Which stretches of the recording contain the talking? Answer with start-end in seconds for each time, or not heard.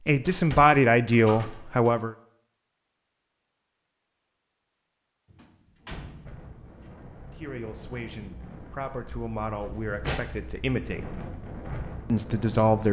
0.1-2.1, 7.3-11.2, 12.1-12.8.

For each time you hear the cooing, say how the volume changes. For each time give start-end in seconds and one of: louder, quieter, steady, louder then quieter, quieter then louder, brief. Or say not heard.
not heard.